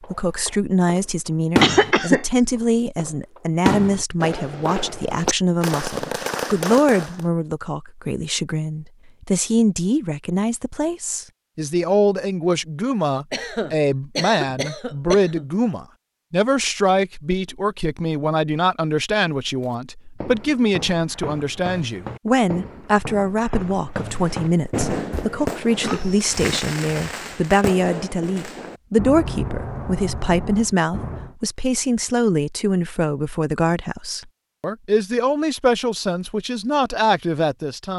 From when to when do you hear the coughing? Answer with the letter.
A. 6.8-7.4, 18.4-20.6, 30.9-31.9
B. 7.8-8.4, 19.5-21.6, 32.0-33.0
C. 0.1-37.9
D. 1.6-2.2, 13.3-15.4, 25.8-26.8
D.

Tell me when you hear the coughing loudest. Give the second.
2 s.